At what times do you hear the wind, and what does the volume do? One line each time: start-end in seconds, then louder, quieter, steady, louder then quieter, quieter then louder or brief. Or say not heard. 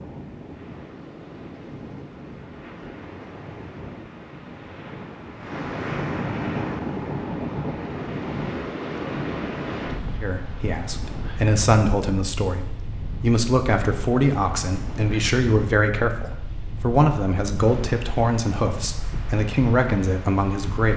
0.0-20.9 louder then quieter.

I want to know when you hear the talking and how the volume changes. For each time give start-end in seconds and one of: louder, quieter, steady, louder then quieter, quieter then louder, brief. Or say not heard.
10.2-20.9 steady.